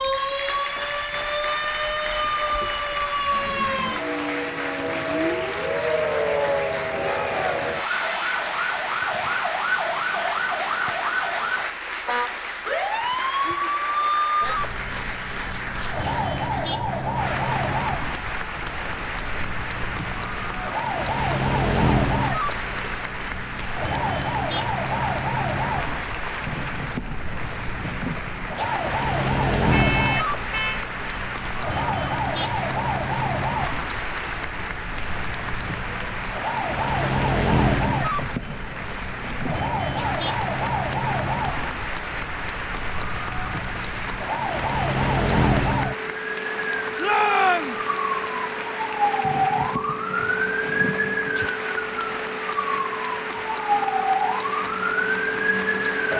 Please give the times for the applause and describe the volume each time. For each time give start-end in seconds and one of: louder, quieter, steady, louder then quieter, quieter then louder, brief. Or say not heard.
0.0-56.1 steady.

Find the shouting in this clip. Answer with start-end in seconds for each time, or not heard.
7.0-7.6, 47.0-47.8.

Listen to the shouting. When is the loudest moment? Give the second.
47 s.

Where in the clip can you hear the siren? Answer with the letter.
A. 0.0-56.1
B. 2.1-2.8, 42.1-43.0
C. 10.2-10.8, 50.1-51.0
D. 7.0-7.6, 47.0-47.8
A.